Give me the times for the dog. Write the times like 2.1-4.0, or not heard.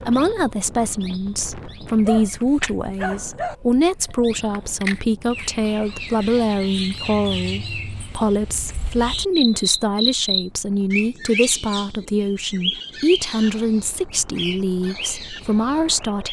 2.0-3.5.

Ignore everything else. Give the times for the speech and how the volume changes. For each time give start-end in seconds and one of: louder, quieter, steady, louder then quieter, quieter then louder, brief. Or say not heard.
0.0-16.2 steady.